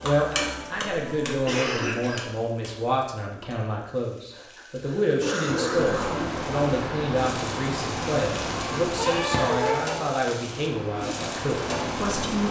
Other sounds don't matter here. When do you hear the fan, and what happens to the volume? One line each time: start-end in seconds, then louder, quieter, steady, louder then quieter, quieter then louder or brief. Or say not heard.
5.7-12.4 quieter then louder.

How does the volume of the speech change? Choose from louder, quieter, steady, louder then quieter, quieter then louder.
steady.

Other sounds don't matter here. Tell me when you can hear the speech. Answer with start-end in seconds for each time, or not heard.
0.0-12.4.